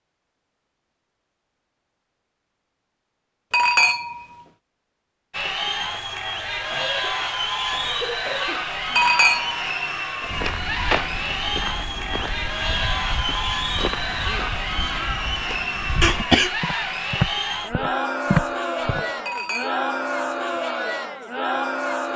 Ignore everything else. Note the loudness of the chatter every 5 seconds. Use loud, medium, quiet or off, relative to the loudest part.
off, loud, loud, loud, loud.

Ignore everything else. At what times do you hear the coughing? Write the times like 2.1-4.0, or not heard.
6.7-8.7, 16.0-16.6.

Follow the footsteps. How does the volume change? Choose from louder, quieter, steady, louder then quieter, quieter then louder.
quieter then louder.